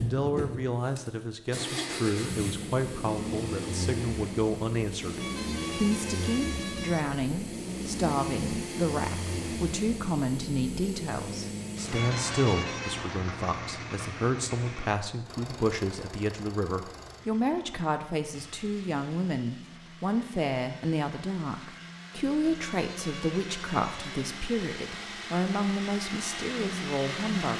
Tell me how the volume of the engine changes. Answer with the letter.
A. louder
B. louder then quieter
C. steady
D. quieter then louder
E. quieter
D.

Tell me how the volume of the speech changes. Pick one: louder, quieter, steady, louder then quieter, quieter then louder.
steady.